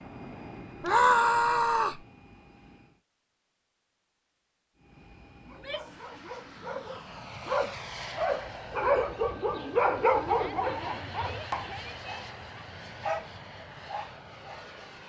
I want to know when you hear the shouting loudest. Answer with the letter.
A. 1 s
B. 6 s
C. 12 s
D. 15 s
A.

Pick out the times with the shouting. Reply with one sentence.
You can hear the shouting from 0.8 to 2.0 s, from 5.5 to 6.0 s and from 10.2 to 12.2 s.